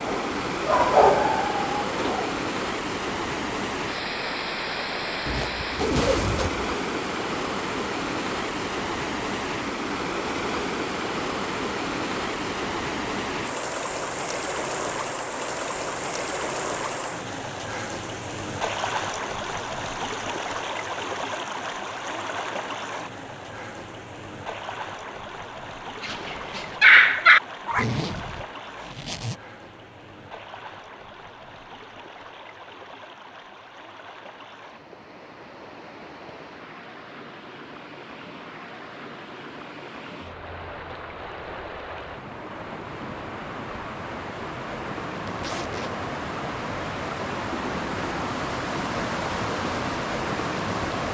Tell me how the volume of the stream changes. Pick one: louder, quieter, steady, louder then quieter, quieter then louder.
quieter then louder.